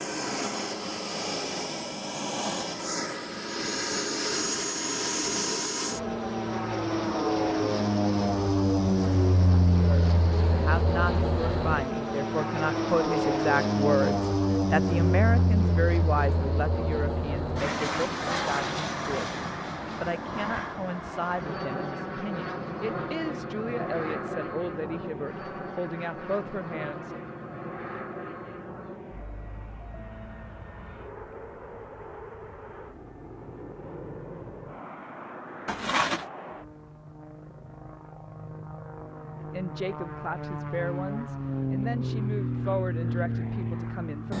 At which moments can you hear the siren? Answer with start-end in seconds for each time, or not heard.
not heard.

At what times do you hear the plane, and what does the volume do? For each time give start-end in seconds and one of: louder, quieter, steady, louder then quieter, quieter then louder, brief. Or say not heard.
0.0-44.3 quieter then louder.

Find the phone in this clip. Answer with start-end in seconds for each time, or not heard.
35.6-36.2.